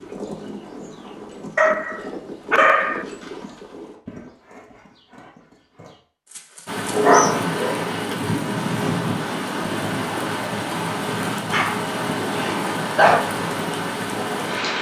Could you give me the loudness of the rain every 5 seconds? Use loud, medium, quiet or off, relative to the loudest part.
off, loud, loud.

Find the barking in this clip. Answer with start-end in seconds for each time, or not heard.
1.6-3.0, 7.0-8.2, 11.5-13.2.